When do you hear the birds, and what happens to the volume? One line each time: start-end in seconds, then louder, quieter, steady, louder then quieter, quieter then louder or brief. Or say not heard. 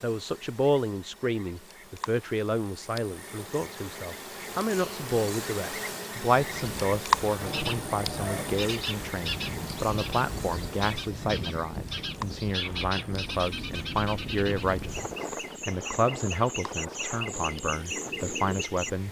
7.4-18.9 steady.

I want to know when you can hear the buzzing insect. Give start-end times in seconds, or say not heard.
0.0-19.0.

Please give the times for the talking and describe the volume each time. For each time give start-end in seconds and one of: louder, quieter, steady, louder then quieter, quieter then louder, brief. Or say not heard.
0.0-19.0 steady.